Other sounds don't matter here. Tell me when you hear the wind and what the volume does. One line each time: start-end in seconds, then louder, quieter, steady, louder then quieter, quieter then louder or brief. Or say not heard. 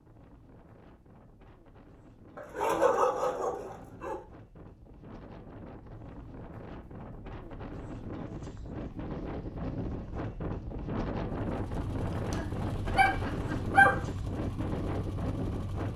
0.0-15.9 louder.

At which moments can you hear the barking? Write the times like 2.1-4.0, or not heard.
2.4-4.2, 12.3-14.1.